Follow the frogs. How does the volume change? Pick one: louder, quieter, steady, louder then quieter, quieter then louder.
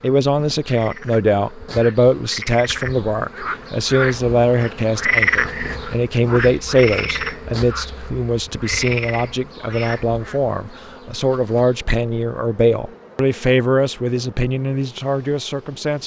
louder then quieter.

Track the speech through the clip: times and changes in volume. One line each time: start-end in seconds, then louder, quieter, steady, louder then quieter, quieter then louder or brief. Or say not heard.
0.0-16.0 steady.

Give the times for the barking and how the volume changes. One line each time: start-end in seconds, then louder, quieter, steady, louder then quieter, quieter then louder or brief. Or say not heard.
not heard.